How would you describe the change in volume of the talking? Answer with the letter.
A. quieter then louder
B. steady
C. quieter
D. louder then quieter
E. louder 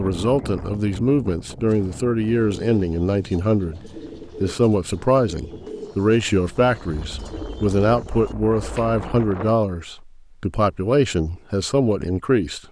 B.